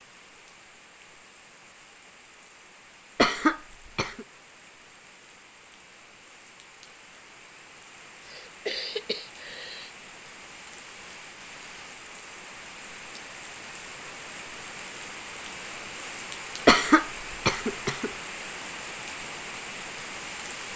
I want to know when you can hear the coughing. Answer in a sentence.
The coughing can be heard from 3.1 to 4.2 s, from 8.2 to 9.9 s and from 16.6 to 18.1 s.